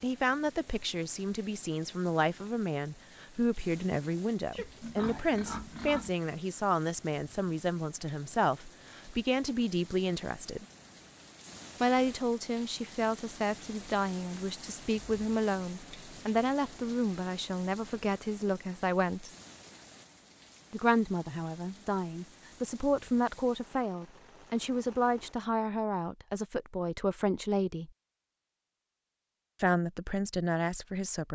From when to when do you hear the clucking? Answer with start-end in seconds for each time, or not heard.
not heard.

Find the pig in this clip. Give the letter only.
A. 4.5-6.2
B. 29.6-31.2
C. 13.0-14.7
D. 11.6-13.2
A.